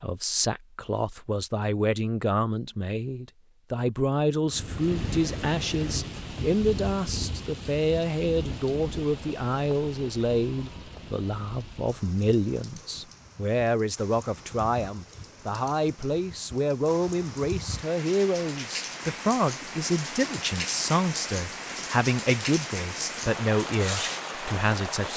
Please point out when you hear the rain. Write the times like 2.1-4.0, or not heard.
4.5-25.1.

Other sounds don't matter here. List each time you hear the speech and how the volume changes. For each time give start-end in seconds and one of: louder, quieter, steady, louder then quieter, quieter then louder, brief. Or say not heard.
0.0-25.1 steady.